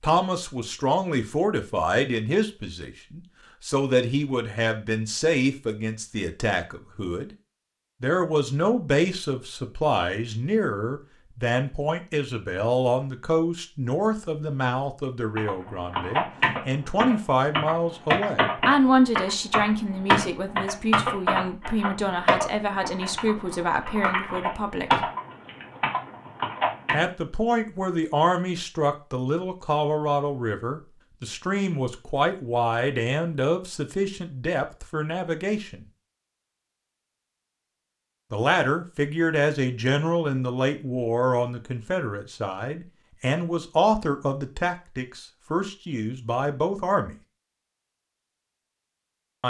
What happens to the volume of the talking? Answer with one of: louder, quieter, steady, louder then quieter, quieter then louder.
steady.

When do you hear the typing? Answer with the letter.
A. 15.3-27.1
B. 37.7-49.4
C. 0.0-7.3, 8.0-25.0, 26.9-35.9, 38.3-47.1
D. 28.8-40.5
A.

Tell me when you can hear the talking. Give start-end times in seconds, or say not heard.
0.0-7.3, 8.0-25.0, 26.9-35.9, 38.3-47.1.